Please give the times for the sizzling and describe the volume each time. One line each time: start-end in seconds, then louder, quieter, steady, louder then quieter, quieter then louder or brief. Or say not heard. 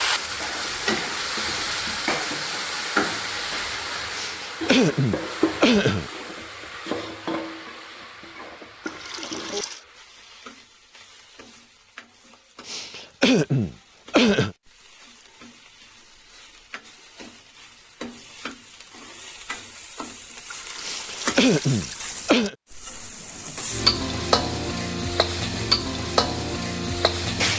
0.0-27.5 quieter then louder.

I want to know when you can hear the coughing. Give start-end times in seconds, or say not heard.
4.1-6.1, 12.7-14.6, 20.8-22.6.